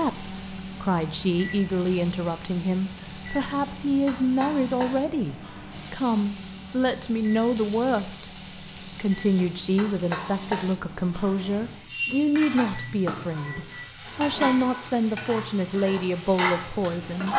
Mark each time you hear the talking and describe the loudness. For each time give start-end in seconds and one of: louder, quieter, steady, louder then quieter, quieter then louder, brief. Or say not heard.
0.0-17.3 steady.